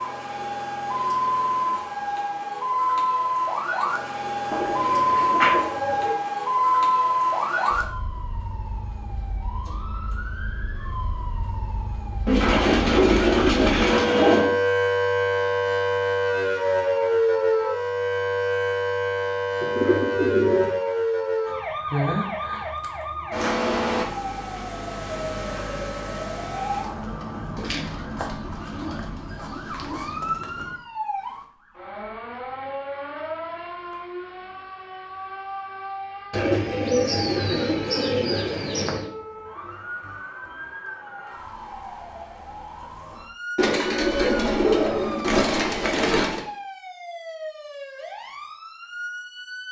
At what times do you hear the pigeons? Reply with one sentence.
The pigeons can be heard from 4.5 to 6.2 s, from 12.2 to 14.4 s, from 19.6 to 20.8 s, from 27.6 to 30.1 s, from 36.3 to 39.0 s and from 43.5 to 46.5 s.